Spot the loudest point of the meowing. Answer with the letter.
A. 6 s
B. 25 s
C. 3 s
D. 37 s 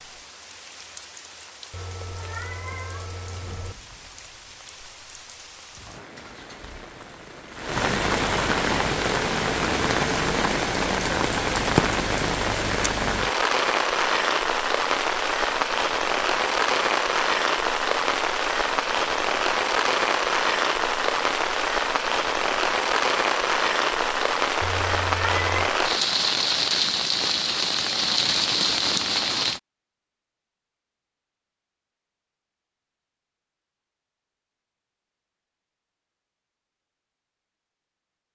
B.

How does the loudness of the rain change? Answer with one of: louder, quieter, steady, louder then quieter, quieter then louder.
louder.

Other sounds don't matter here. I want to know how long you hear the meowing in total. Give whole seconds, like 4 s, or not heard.
3 s.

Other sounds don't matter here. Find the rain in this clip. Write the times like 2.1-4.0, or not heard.
0.0-29.6.